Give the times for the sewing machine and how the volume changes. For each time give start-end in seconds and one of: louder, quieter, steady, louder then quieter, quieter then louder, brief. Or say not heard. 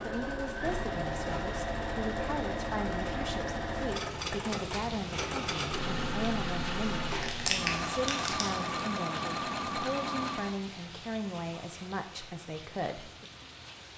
0.0-10.6 steady.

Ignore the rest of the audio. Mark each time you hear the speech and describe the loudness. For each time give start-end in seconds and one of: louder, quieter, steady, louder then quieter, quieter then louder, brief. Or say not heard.
0.0-13.1 steady.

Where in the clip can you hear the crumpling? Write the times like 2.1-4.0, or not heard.
7.1-8.8.